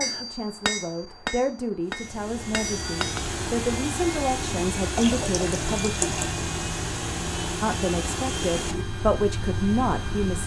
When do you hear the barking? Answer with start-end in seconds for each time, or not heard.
not heard.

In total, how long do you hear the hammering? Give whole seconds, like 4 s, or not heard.
3 s.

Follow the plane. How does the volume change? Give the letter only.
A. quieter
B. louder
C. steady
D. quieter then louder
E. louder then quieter
C.